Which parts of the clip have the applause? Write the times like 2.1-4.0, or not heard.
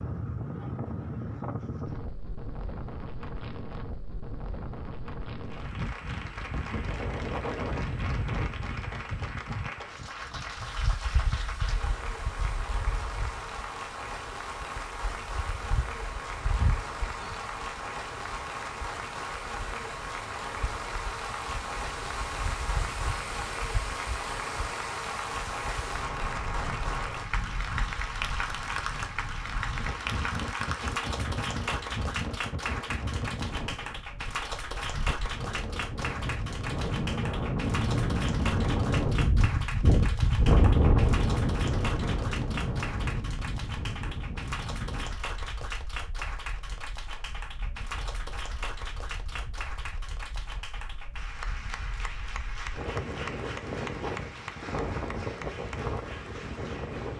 5.4-57.1.